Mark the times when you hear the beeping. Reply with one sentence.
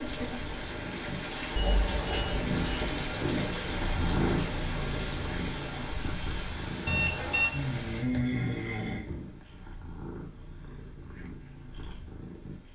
You can hear the beeping from 1.6 to 2.9 s and from 6.8 to 7.5 s.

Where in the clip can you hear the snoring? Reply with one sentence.
You can hear the snoring from 7.5 to 9.2 s.